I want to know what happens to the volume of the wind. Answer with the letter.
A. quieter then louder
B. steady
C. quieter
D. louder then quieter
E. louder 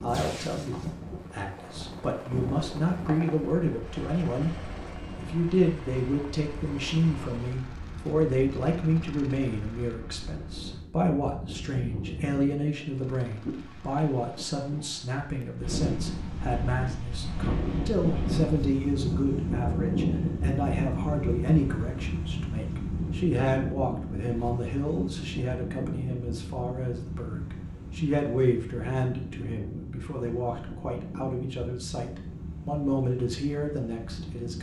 D.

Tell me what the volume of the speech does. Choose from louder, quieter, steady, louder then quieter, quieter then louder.
steady.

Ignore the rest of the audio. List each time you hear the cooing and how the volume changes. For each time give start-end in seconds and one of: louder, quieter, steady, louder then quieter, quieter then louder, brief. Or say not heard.
not heard.